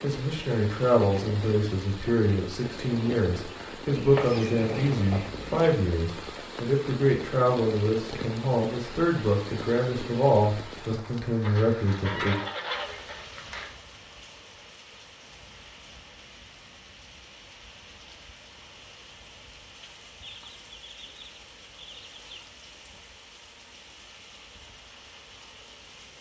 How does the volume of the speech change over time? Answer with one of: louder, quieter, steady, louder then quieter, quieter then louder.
steady.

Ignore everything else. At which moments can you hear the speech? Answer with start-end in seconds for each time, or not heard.
0.0-12.3.